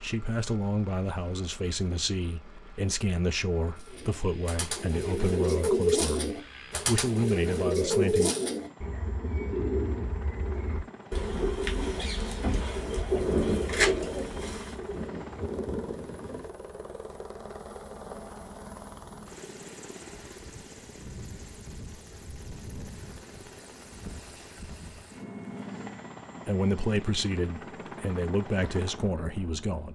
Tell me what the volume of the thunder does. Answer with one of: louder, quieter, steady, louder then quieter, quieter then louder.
quieter then louder.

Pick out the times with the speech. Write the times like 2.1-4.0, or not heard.
0.0-8.3, 26.4-29.8.